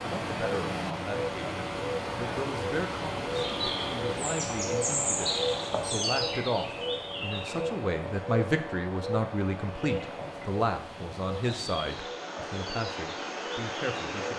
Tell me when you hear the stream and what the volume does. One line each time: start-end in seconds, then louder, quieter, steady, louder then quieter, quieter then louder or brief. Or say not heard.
0.0-14.3 quieter then louder.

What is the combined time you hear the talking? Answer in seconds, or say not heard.
14 s.